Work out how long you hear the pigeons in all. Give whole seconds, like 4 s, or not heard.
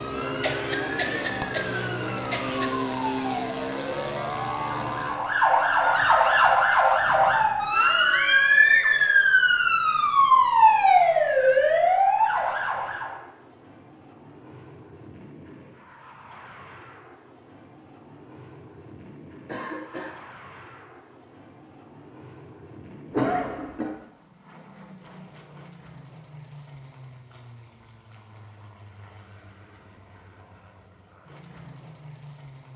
not heard.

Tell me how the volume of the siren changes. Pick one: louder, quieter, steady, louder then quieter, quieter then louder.
louder.